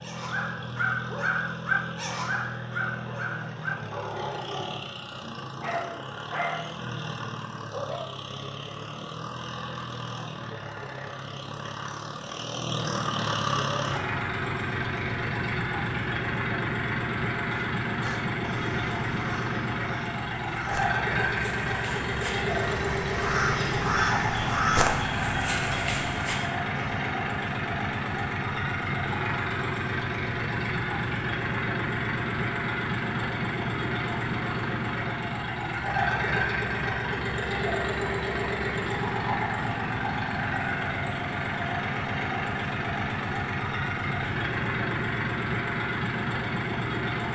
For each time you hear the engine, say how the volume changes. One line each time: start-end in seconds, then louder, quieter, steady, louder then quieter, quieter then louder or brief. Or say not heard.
0.0-47.3 louder.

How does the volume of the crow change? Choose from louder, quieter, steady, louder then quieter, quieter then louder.
louder.